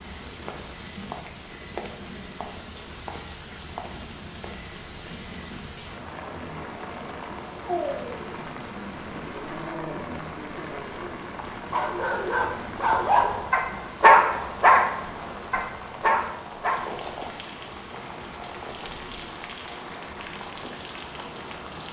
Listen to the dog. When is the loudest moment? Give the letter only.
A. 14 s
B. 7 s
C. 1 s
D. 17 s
A.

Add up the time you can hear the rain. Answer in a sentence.
You can hear the rain for 22 seconds altogether.